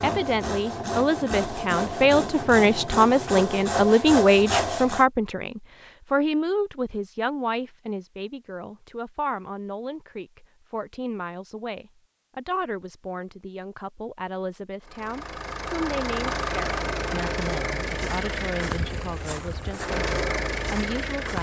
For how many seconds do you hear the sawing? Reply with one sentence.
The sawing can be heard for 5 seconds in total.